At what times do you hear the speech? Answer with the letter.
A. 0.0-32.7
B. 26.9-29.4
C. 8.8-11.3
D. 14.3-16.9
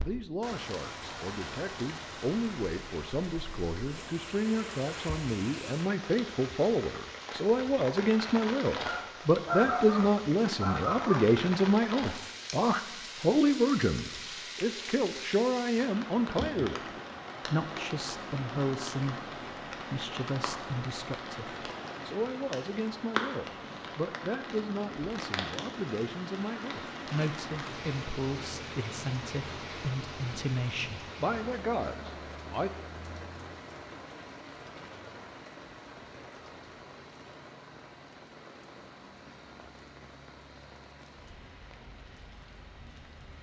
A.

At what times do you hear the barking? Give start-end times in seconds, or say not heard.
8.8-11.3.